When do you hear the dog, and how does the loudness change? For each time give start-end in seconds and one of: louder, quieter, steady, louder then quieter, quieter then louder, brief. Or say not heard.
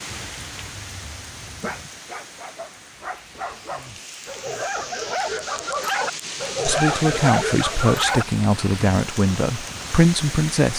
0.2-8.2 louder.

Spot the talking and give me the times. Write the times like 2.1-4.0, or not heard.
6.7-10.7.